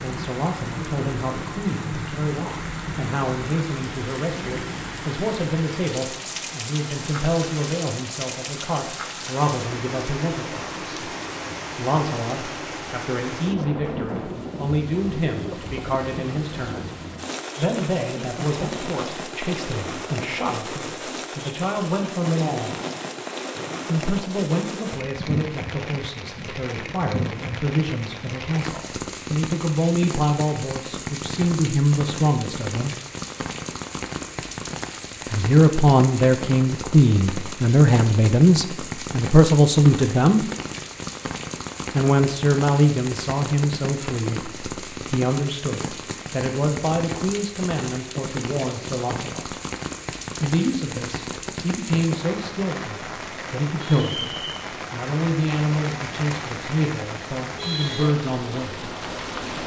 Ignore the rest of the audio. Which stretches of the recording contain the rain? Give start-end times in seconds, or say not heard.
0.0-59.6.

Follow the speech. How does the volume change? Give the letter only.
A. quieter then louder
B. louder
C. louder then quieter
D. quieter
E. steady
C.